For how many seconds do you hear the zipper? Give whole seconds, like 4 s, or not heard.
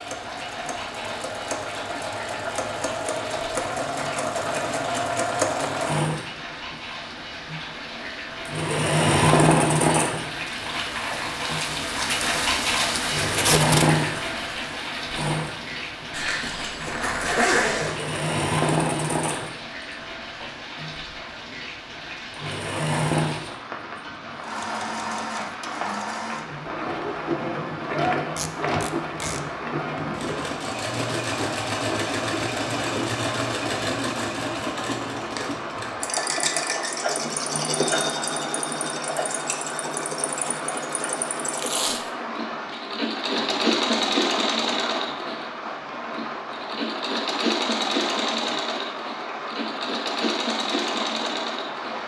2 s.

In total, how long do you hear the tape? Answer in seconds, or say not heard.
2 s.